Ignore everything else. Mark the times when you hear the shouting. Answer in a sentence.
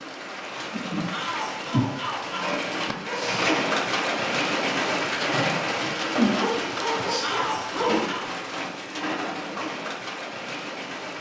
The shouting can be heard from 1.1 to 2.5 s and from 7.2 to 8.2 s.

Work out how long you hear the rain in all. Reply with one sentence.
The rain can be heard for 11 seconds in total.